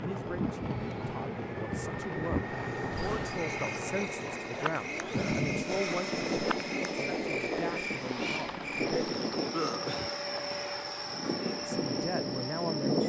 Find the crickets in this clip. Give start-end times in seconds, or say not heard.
2.9-13.0.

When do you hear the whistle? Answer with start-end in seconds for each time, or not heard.
not heard.